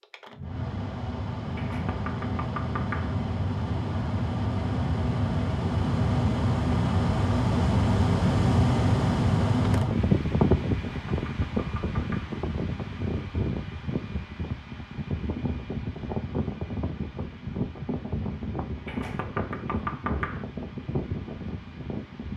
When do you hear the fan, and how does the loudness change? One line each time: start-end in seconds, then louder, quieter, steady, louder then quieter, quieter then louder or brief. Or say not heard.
0.0-22.3 louder then quieter.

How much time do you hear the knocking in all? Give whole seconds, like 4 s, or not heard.
5 s.